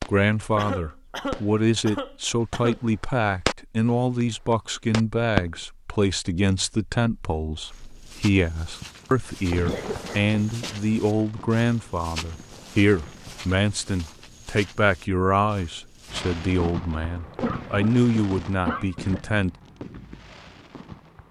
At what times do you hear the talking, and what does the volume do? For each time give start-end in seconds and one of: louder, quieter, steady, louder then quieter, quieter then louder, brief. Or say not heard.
0.1-19.6 steady.